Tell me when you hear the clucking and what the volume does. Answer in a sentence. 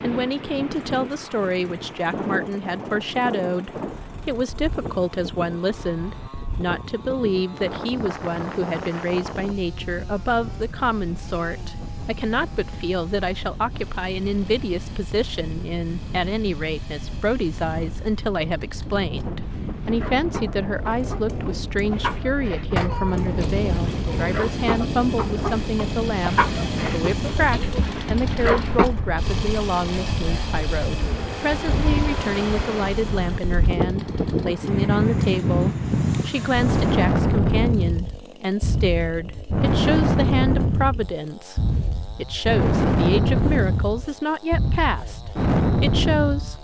You can hear the clucking from 19.4 to 28.9 s, getting louder.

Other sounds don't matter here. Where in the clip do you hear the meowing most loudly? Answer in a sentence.
The volume of the meowing peaks at 23 seconds.